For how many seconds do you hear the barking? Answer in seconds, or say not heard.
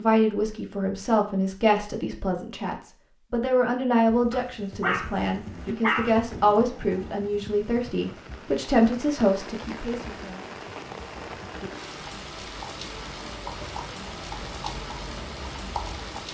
3 s.